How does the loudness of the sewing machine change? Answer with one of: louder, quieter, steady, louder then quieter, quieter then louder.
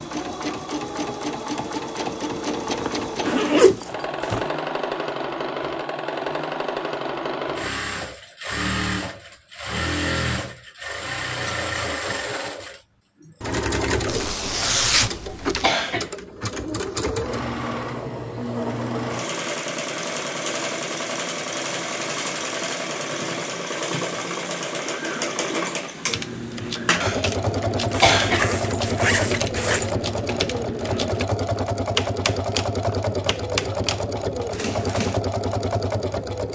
steady.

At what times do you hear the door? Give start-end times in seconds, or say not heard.
not heard.